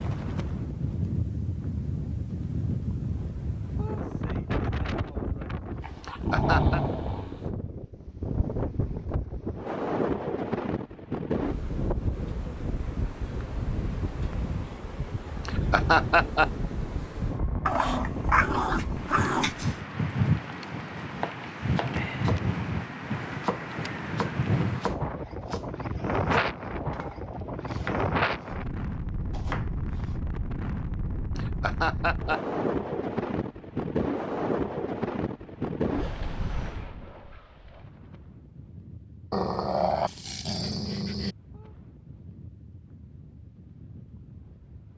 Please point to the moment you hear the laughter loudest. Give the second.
16 s.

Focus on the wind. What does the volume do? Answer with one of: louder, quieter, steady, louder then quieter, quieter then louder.
quieter.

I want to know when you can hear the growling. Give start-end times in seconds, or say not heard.
5.8-7.5, 17.6-19.8, 39.3-41.4.